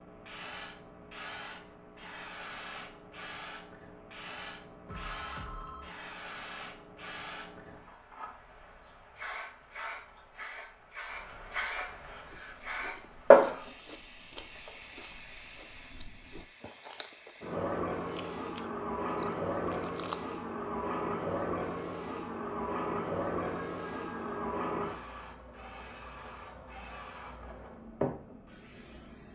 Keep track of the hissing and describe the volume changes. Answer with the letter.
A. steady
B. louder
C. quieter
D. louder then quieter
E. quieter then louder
D.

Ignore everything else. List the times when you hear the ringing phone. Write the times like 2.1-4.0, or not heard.
4.8-5.9, 23.4-24.6.